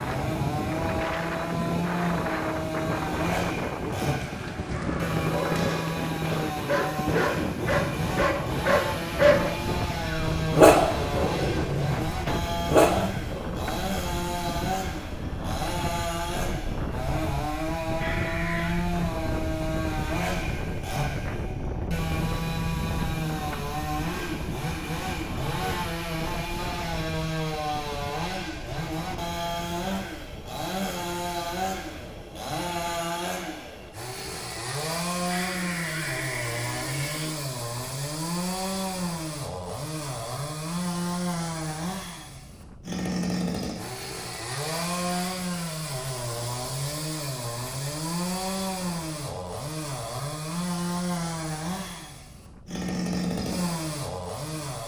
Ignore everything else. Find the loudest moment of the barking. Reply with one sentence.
The loudest moment of the barking is at 11 seconds.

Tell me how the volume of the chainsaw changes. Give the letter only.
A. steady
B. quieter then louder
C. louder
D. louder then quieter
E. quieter
A.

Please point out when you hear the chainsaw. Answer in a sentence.
You can hear the chainsaw from 0.0 to 54.8 s.